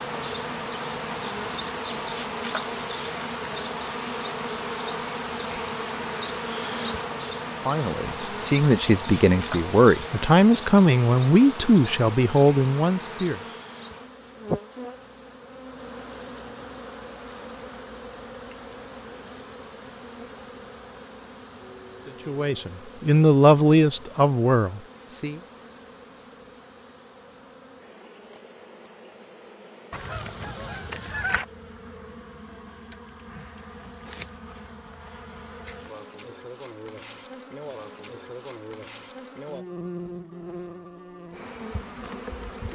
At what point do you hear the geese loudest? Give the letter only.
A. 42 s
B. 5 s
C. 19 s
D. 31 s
D.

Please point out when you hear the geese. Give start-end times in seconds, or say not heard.
29.9-31.4.